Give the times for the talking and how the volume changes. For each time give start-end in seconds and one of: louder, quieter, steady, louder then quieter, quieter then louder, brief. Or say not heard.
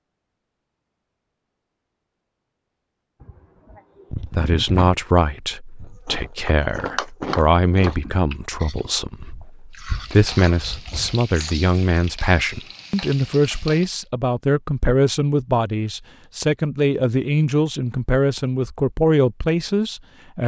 4.1-20.4 steady.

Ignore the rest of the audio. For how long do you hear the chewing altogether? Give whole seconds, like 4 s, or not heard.
6 s.